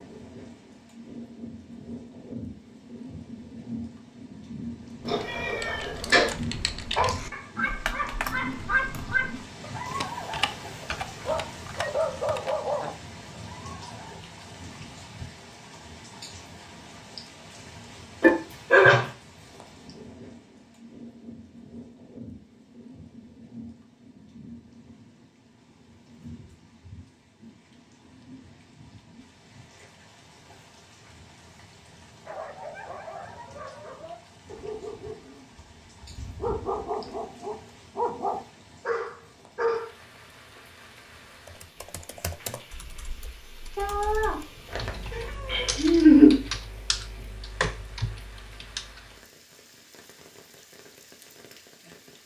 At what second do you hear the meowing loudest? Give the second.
46 s.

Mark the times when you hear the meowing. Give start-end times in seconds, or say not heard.
5.0-6.3, 18.2-19.1, 43.8-46.4.